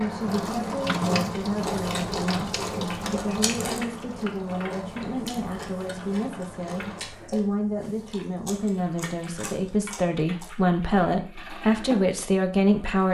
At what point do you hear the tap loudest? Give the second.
1 s.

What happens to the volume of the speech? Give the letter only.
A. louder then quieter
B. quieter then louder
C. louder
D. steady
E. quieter
C.